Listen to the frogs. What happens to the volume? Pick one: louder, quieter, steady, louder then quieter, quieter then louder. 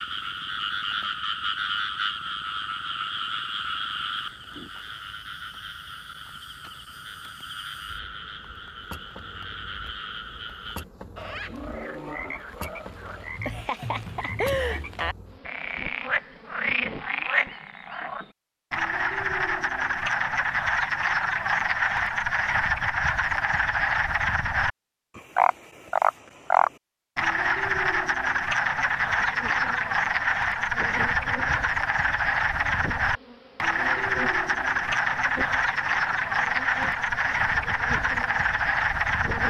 louder.